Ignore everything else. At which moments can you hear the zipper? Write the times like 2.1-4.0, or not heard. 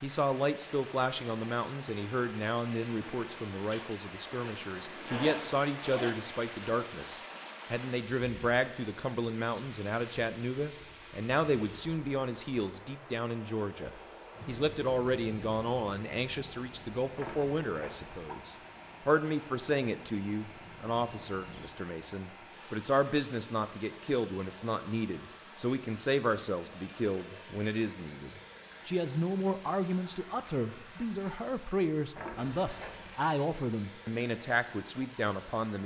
5.0-6.2, 17.1-18.4, 32.1-33.1.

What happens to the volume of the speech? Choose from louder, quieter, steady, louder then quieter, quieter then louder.
steady.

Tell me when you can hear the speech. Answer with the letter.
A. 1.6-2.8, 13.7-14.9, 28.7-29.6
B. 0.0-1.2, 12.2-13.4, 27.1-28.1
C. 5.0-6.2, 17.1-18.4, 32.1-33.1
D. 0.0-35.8
D.